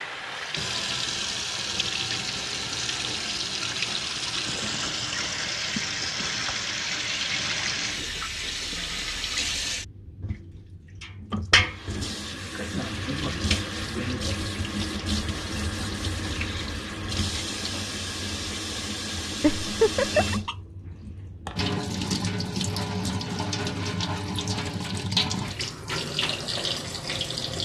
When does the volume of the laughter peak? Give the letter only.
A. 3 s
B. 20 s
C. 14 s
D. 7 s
B.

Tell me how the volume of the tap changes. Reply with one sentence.
The loudness of the tap stays about the same.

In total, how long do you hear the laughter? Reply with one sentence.
You can hear the laughter for 2 seconds altogether.